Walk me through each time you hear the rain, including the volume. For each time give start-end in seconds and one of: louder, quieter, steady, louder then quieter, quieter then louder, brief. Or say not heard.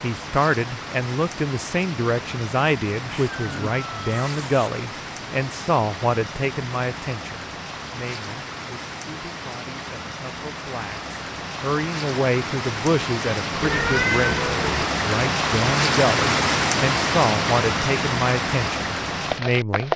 0.0-19.9 louder.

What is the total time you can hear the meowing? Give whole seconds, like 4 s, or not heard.
3 s.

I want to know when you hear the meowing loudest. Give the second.
14 s.